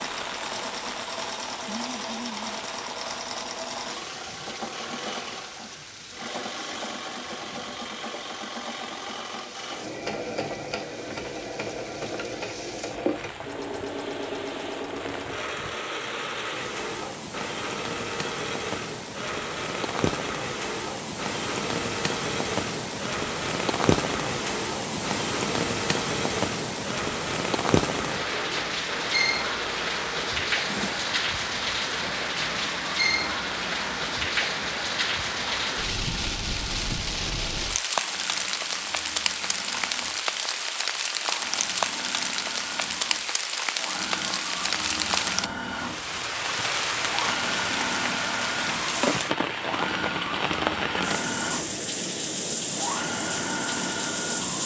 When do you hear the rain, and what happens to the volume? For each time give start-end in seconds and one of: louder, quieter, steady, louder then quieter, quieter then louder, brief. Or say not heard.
0.0-54.6 louder.